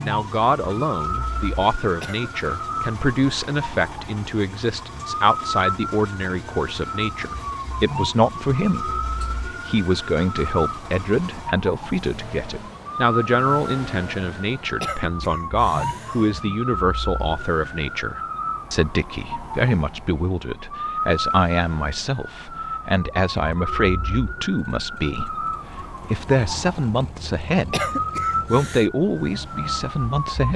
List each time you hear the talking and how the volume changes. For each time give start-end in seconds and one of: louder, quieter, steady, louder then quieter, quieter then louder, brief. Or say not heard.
0.0-30.5 steady.